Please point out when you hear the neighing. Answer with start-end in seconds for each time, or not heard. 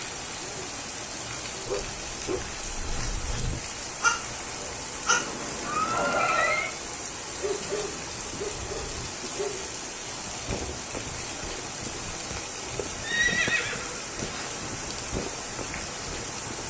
5.1-6.8, 13.0-15.0.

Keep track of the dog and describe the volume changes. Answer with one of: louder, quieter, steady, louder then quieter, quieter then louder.
louder then quieter.